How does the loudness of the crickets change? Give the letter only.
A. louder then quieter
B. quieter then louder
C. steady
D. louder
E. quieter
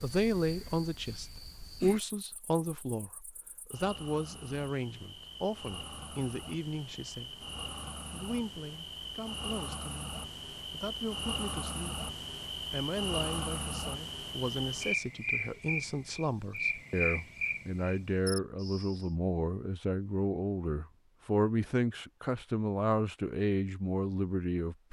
D.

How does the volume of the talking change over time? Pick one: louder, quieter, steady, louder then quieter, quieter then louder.
quieter then louder.